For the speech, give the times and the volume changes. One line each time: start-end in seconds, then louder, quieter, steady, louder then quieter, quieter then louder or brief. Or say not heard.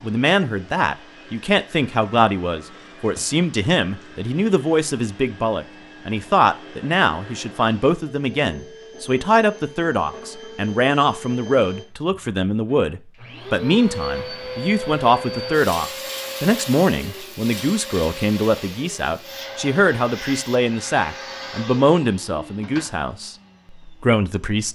0.0-24.7 steady.